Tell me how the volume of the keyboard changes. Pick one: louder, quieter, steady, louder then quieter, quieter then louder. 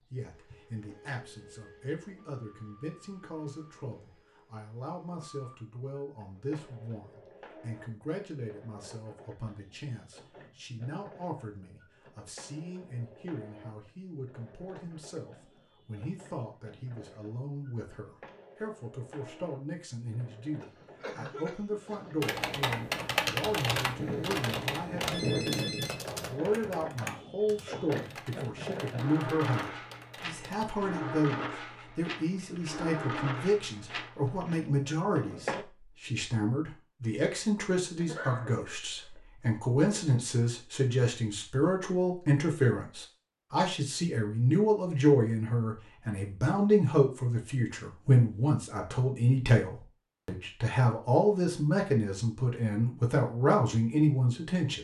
quieter.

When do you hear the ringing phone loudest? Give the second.
25 s.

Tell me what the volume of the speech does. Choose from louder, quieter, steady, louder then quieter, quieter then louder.
louder.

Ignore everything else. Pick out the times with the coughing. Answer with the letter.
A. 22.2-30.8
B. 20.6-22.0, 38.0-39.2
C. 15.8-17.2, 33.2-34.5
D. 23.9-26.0
B.